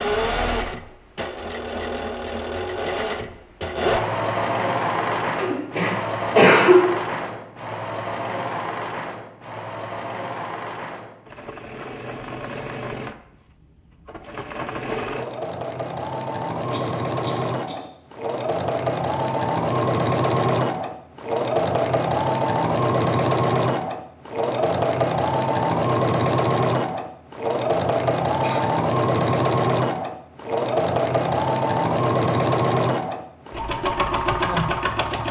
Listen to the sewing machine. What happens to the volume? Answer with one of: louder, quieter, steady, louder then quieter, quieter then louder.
quieter then louder.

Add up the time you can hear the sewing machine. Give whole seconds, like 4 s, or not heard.
35 s.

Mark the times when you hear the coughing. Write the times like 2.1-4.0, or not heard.
5.3-6.8, 16.7-17.9, 28.4-29.1.